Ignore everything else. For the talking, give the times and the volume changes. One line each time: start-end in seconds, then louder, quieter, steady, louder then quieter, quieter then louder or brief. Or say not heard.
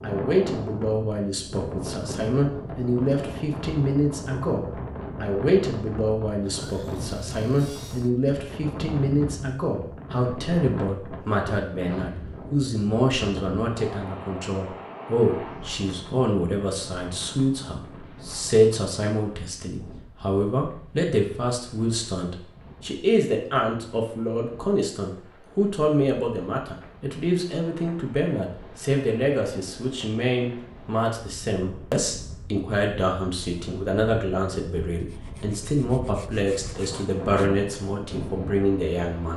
0.0-39.3 steady.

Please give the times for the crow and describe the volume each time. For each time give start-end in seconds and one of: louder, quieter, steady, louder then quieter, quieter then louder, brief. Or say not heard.
not heard.